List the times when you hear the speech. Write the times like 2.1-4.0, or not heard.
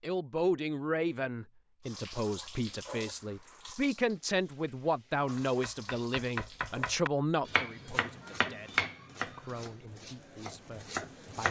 0.0-11.4.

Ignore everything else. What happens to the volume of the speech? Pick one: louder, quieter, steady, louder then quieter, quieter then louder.
quieter.